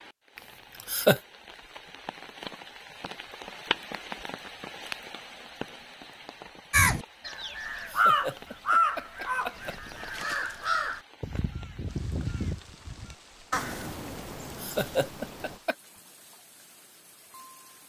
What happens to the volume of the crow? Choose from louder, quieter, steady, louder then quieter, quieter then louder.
quieter.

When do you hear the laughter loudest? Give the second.
1 s.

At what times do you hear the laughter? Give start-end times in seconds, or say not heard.
0.3-1.2, 7.8-9.8, 14.1-15.8.